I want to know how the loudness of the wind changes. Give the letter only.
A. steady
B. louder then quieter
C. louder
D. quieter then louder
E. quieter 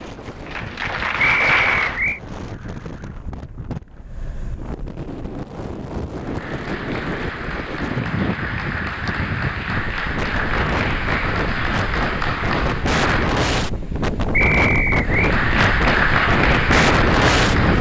C.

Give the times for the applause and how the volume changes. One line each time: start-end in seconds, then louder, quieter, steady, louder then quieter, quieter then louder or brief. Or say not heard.
0.0-2.1 brief
6.1-13.4 louder
15.0-17.7 brief.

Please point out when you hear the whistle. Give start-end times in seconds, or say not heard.
1.2-2.2, 14.3-15.3.